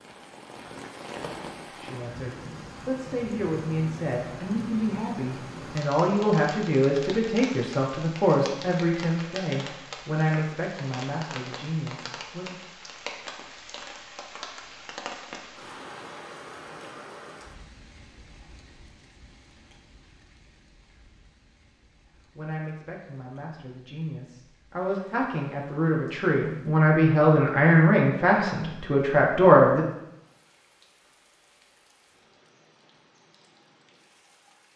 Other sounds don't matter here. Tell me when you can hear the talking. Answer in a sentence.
The talking can be heard from 1.8 to 12.6 s and from 22.2 to 29.9 s.